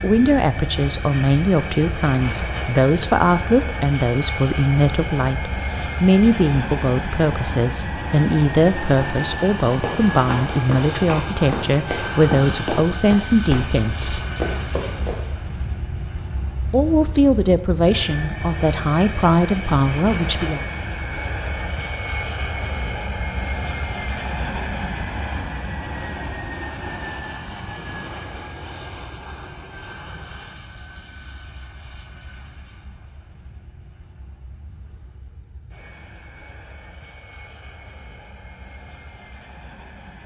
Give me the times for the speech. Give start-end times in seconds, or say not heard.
0.0-14.2, 16.6-20.6.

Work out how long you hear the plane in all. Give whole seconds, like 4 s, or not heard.
40 s.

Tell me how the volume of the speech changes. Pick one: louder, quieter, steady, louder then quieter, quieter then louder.
steady.